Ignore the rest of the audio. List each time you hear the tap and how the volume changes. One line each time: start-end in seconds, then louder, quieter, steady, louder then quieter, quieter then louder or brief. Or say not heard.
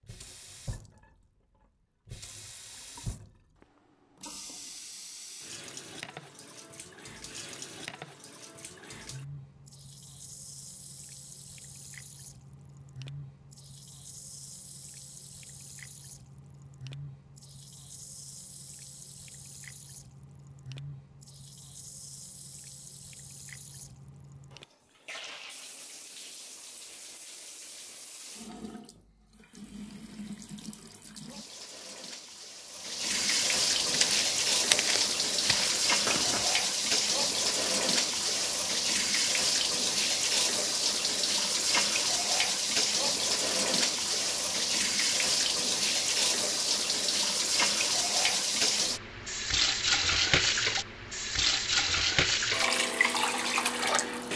0.0-54.3 louder.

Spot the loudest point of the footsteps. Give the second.
35 s.